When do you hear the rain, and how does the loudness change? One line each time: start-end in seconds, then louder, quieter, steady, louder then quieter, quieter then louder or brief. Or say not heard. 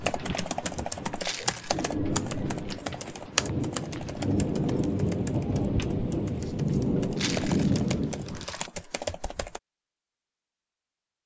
0.0-8.4 louder.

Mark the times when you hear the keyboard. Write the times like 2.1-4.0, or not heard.
0.0-9.6.